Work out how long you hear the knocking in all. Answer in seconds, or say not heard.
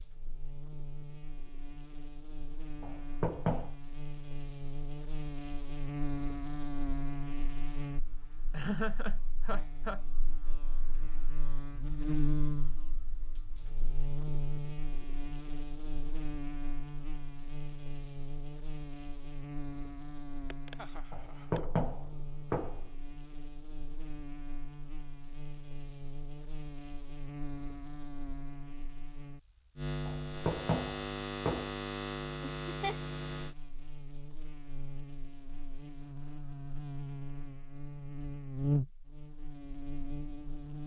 4 s.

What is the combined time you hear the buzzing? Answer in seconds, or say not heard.
41 s.